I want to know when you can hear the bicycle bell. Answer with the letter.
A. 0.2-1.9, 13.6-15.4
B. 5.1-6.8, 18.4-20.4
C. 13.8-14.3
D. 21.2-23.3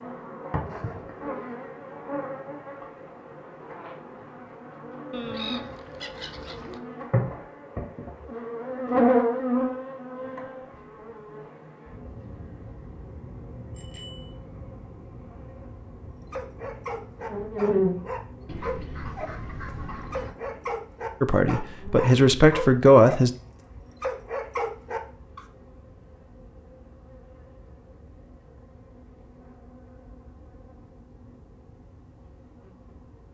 C.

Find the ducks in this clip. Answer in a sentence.
You can hear the ducks from 5.1 to 6.8 s and from 18.4 to 20.4 s.